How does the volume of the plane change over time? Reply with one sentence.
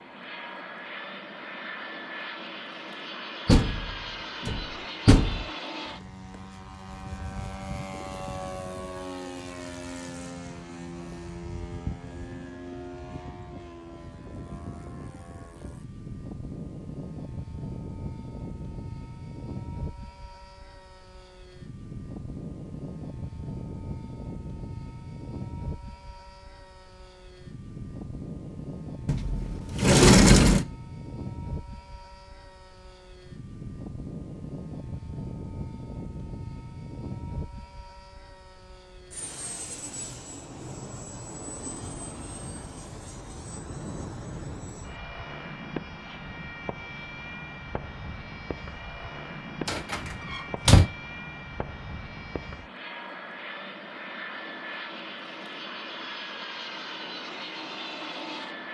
The loudness of the plane stays about the same.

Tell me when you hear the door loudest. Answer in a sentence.
The loudest moment of the door is at 30 seconds.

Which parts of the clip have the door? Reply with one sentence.
The door can be heard from 3.5 to 5.5 s, from 29.1 to 30.6 s and from 49.6 to 50.9 s.